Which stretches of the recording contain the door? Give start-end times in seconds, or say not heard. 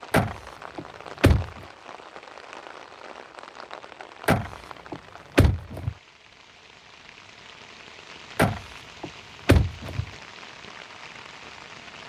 0.1-1.5, 4.2-6.0, 8.3-10.1.